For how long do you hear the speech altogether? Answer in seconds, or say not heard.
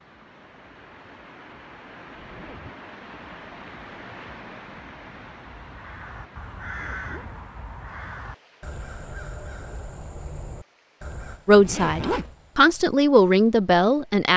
3 s.